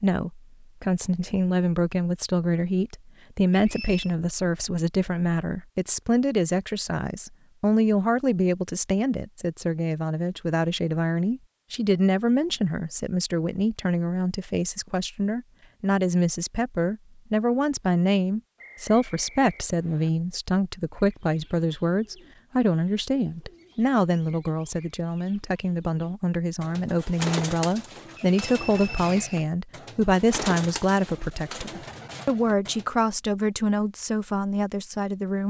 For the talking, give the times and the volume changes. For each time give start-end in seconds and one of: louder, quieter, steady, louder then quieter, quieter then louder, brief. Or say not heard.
0.0-35.4 steady.